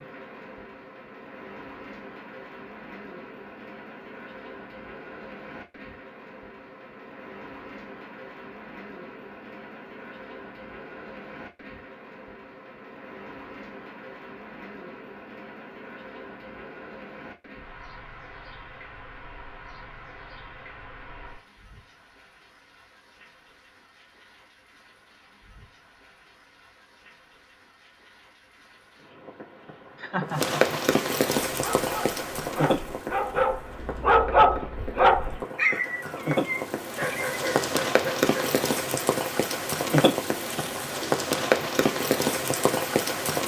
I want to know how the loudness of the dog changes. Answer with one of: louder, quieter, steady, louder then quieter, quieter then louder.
louder then quieter.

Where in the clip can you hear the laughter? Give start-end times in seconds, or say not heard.
29.9-30.8.